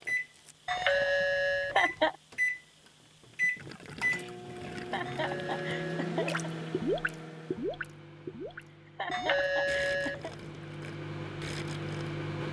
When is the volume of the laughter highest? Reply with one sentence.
The loudest moment of the laughter is at 2 seconds.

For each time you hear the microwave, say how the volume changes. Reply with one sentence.
You can hear the microwave from 0.0 to 12.4 s, getting quieter then louder.